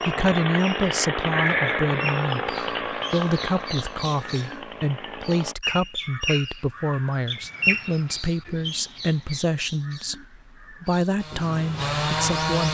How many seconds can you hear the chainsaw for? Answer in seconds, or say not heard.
7 s.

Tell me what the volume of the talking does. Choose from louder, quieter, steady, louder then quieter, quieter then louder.
steady.